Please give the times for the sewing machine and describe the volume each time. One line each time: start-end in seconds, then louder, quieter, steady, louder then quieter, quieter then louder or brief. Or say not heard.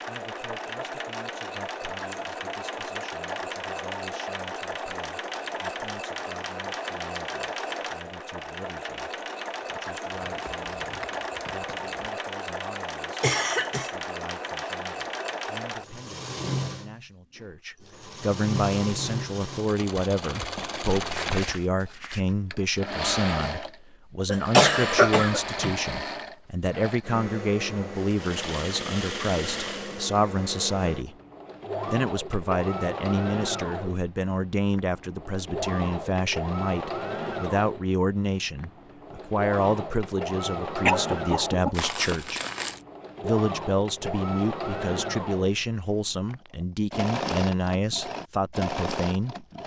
0.0-49.6 steady.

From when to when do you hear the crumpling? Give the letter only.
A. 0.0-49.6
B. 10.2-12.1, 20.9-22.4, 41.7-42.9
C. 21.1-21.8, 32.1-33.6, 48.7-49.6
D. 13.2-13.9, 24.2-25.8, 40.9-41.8
B.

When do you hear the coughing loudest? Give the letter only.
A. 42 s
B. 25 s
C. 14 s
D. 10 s
B.